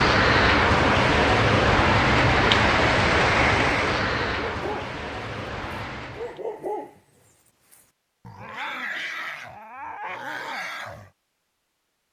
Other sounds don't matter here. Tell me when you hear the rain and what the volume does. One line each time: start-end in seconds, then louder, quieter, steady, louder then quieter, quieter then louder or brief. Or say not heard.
0.0-6.4 quieter.